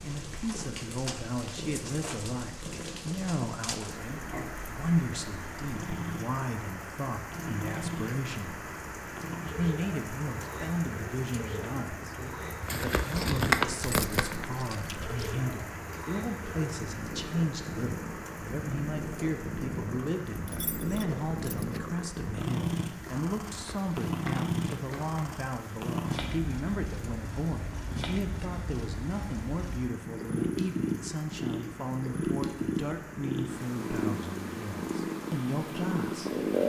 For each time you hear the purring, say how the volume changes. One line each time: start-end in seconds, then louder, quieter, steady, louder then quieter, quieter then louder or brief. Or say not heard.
0.0-36.6 louder.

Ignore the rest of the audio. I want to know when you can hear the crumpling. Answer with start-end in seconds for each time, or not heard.
12.6-14.4, 23.5-25.1.